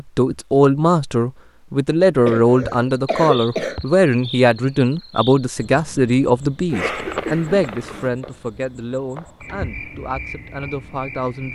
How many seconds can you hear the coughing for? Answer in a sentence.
You can hear the coughing for 3 seconds altogether.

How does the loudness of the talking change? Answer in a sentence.
The volume of the talking goes down.